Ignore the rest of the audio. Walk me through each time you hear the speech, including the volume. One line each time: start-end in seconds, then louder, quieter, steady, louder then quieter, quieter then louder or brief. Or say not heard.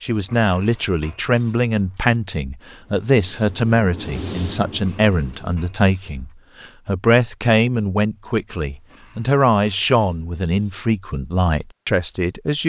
0.0-12.6 steady.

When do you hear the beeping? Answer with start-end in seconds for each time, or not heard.
not heard.